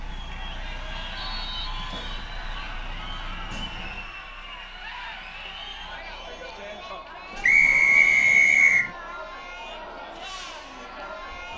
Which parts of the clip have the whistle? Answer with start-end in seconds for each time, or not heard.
1.1-2.2, 7.4-8.9.